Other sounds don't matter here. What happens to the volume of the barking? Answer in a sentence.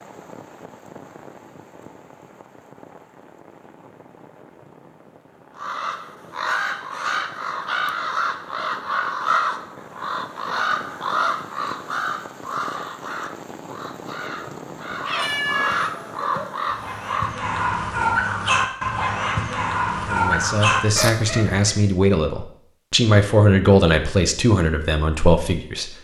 The volume of the barking goes up.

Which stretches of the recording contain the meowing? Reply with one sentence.
The meowing can be heard from 14.9 to 16.4 s.